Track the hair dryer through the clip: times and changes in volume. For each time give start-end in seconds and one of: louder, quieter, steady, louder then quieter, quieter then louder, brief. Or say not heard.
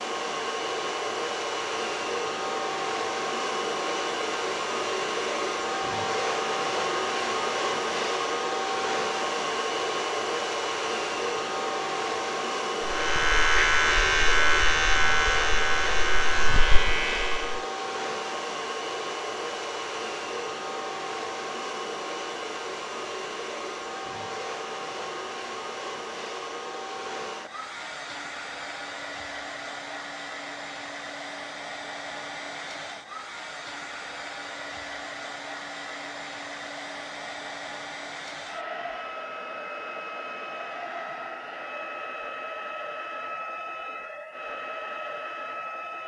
0.0-46.0 quieter.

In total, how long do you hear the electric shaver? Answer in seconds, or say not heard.
5 s.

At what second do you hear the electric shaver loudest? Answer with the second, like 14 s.
14 s.